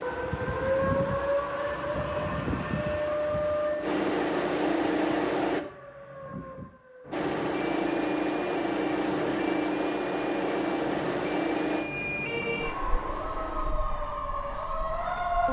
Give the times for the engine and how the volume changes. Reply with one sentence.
You can hear the engine from 0.0 to 5.7 s, getting louder; and from 7.1 to 13.8 s, getting quieter.